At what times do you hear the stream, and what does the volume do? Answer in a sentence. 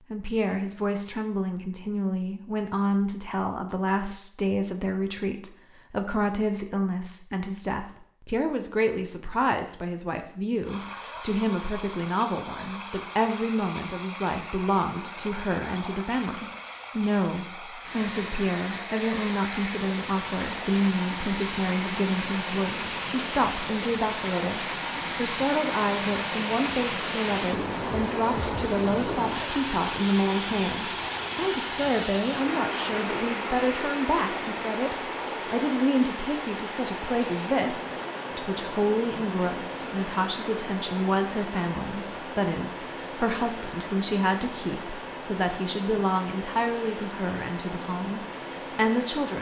You can hear the stream from 10.6 to 49.3 s, getting louder then quieter.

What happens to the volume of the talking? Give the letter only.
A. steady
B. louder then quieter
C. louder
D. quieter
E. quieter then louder
A.